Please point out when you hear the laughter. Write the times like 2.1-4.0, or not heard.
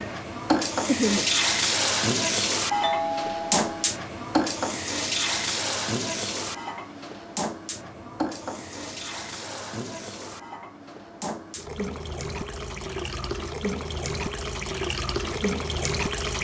0.8-1.2.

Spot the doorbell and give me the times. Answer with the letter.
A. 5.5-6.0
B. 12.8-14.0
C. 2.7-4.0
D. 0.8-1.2
C.